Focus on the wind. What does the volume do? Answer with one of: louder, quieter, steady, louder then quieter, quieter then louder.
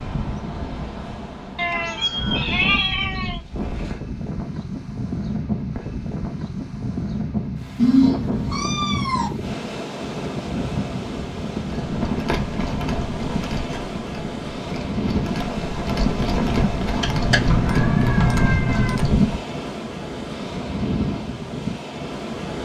steady.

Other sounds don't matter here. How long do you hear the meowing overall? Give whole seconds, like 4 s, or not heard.
5 s.